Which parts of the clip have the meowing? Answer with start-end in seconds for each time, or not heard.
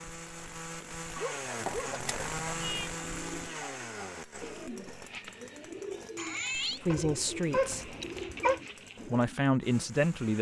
2.0-2.9, 6.2-6.8.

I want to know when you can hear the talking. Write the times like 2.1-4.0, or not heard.
6.8-8.0, 9.1-10.3.